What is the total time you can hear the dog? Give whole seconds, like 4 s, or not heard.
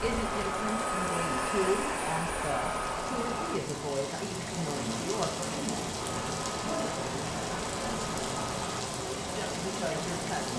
not heard.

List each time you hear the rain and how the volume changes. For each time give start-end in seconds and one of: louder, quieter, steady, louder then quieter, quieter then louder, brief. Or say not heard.
0.0-10.5 louder.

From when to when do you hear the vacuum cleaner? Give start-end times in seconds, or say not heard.
0.0-3.6, 6.0-8.8.